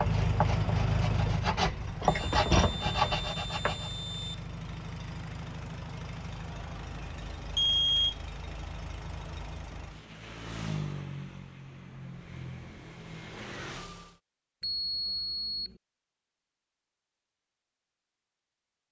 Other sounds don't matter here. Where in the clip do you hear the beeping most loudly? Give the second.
8 s.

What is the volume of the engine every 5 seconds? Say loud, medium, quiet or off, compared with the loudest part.
loud, medium, medium, off.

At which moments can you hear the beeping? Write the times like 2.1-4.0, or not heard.
2.0-4.4, 7.5-8.2, 14.6-15.8.